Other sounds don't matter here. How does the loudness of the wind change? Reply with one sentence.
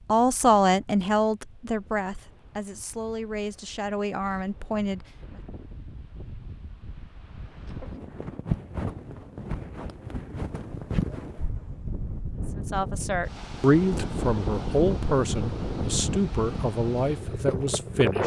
The loudness of the wind goes up.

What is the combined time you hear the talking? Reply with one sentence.
The talking can be heard for 11 seconds in total.